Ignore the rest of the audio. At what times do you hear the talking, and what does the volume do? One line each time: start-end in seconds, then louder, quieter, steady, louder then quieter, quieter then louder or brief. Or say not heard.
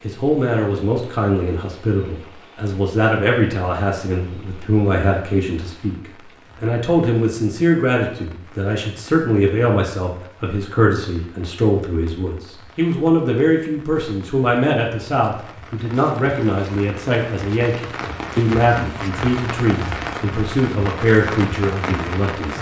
0.0-22.5 steady.